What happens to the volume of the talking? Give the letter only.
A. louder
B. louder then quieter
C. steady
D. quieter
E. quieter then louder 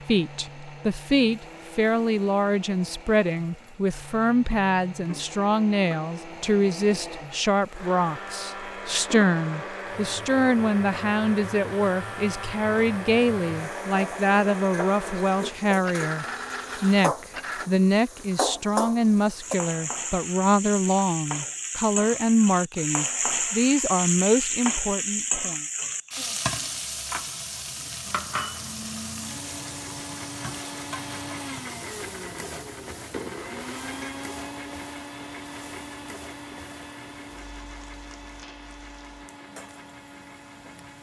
C.